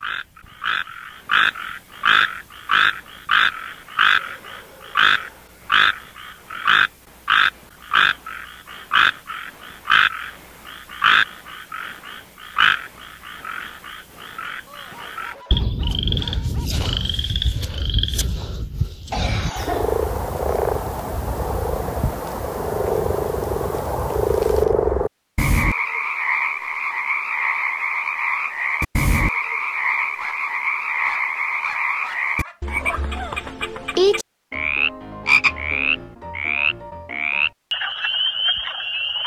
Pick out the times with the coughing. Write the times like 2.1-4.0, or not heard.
19.1-20.1.